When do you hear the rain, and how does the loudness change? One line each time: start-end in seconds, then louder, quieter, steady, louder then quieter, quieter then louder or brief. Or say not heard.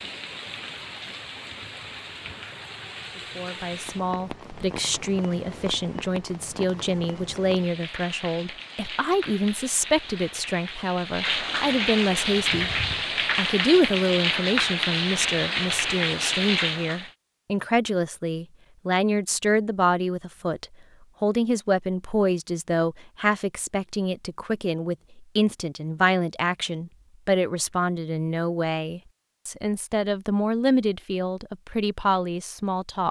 0.0-17.1 louder.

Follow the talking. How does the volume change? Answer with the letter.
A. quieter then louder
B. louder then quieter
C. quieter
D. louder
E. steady
E.